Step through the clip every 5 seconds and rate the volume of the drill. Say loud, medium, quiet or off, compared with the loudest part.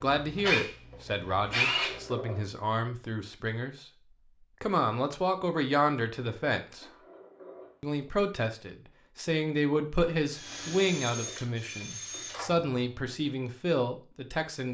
loud, off, medium.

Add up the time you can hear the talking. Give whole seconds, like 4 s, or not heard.
14 s.